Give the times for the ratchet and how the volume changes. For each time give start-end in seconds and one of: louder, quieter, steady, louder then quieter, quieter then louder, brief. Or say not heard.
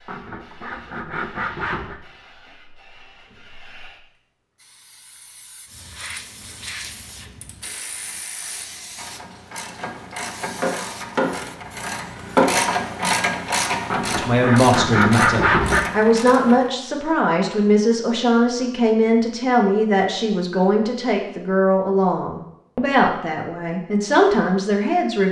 6.0-16.7 louder then quieter.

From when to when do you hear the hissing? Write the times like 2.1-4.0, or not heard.
0.0-12.2.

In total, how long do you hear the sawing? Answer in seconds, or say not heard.
4 s.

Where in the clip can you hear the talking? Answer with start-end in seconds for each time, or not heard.
14.2-25.2.